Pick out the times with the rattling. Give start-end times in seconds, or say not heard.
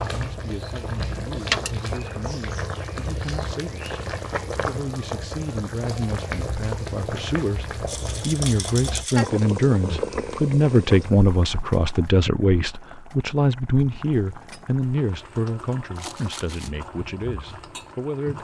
1.4-1.9, 7.8-9.3, 15.9-16.7.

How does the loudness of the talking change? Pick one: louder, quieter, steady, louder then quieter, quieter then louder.
louder then quieter.